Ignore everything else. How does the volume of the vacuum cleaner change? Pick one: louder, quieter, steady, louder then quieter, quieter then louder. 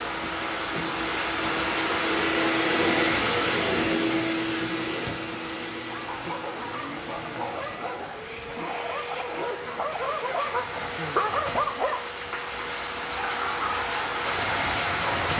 quieter.